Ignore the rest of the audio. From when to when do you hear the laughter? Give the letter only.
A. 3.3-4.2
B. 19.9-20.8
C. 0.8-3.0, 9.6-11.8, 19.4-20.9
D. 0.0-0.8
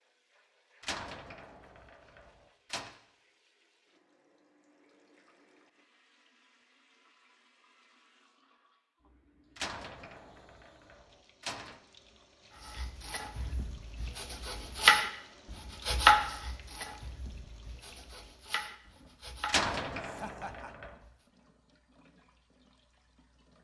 B.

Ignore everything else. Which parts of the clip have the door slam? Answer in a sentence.
The door slam can be heard from 0.8 to 3.0 s, from 9.6 to 11.8 s and from 19.4 to 20.9 s.